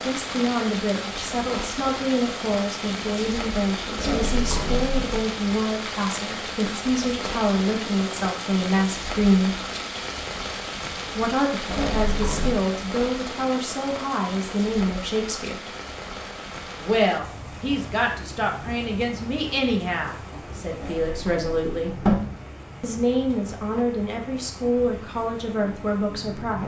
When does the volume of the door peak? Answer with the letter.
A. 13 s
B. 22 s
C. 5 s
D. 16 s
B.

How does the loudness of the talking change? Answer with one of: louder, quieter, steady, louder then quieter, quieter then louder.
steady.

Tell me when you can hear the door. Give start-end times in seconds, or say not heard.
4.0-5.2, 11.7-12.7, 20.7-22.1.